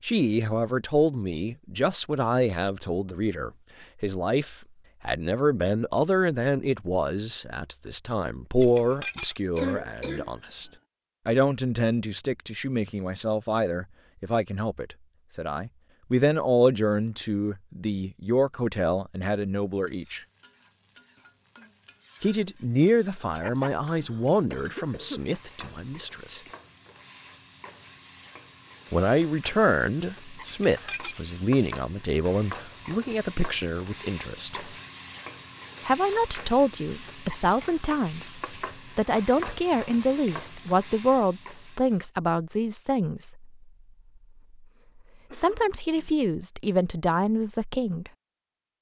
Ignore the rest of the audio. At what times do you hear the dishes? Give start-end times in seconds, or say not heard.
8.6-9.3, 30.4-31.2.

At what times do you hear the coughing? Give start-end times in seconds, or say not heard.
9.6-10.4, 23.4-25.2, 45.2-46.2.